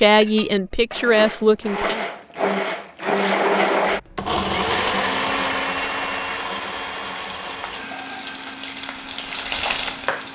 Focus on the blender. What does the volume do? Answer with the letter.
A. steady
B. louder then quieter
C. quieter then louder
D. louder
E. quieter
B.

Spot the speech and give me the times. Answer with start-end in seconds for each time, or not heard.
0.0-2.0.